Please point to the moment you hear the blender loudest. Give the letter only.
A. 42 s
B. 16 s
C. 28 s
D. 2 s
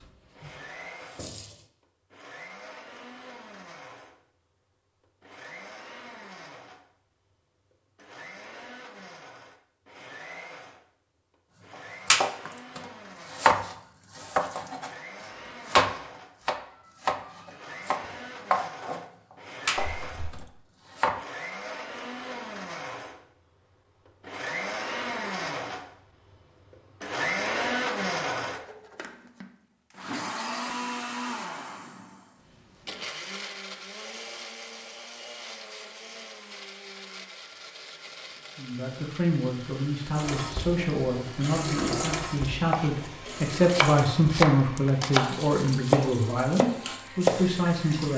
C.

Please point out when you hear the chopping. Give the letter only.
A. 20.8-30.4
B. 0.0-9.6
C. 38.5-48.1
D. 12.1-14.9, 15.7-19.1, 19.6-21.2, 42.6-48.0
D.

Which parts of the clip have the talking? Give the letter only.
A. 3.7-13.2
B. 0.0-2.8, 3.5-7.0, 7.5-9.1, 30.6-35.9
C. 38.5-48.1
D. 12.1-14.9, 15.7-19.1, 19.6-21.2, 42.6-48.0
C.